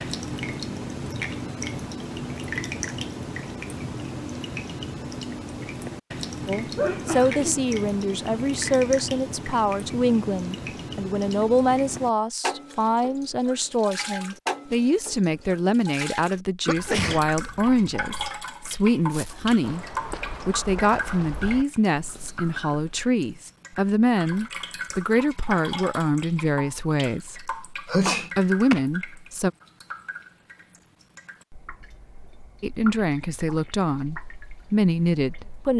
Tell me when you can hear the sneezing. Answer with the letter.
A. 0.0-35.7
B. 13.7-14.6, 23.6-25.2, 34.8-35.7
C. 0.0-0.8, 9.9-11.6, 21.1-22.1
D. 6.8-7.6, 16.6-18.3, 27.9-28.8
D.